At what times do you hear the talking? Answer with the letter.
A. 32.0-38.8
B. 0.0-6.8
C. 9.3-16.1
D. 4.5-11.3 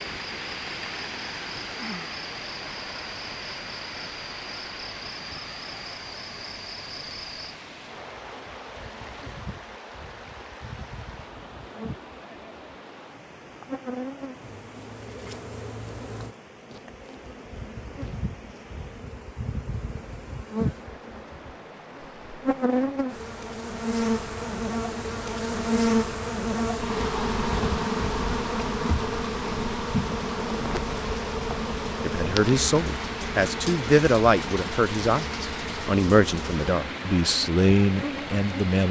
A.